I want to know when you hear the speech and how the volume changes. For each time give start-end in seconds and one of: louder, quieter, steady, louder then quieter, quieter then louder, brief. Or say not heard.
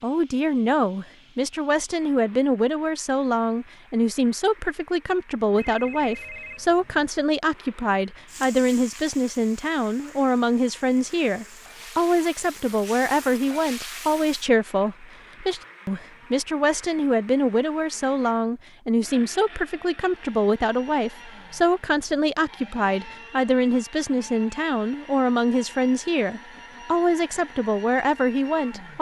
0.0-28.9 steady.